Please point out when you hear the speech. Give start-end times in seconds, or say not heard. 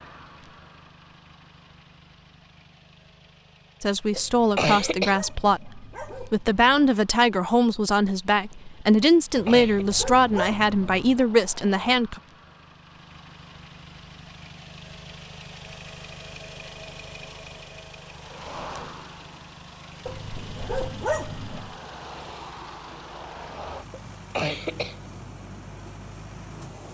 3.8-12.2.